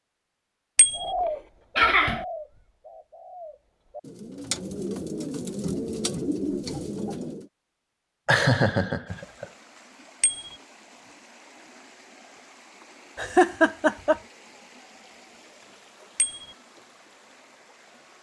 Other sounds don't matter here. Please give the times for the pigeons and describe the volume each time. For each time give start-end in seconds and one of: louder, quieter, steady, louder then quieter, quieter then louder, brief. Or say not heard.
0.9-7.5 quieter then louder.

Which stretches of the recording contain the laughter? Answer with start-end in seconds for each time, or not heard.
1.8-2.2, 8.2-9.4, 13.2-14.2.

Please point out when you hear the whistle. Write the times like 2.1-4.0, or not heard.
not heard.